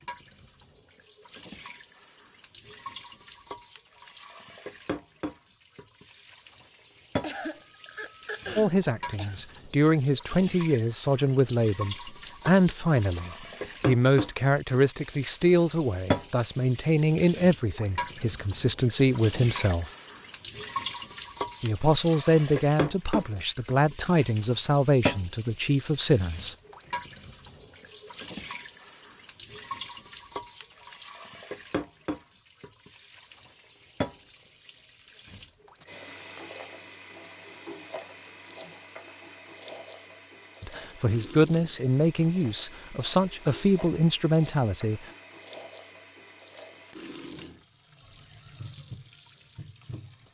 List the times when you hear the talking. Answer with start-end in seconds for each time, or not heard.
8.6-19.9, 21.6-26.6, 40.6-45.0.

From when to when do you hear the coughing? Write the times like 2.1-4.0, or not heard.
7.2-9.4.